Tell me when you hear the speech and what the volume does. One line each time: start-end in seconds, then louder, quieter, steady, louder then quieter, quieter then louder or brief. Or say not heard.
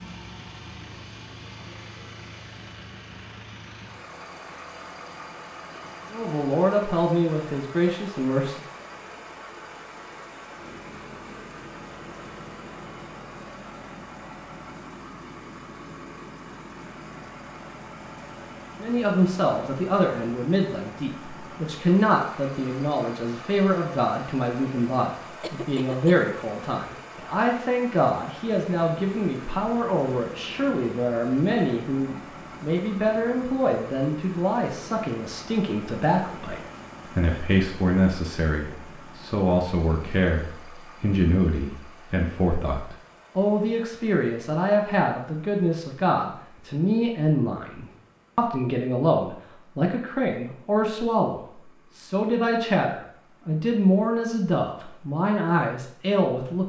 6.1-8.7 brief
18.8-56.6 steady.